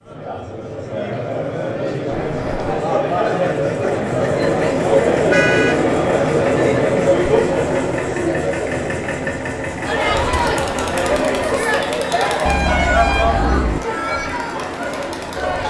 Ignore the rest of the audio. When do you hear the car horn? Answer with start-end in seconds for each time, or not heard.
2.1-2.9, 5.3-5.8, 12.4-13.8.